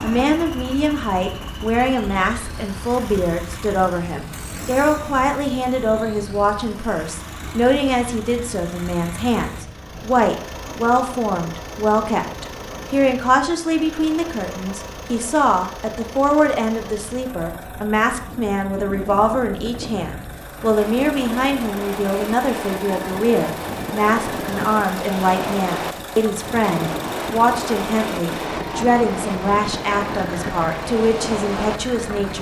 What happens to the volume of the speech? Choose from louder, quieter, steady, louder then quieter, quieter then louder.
steady.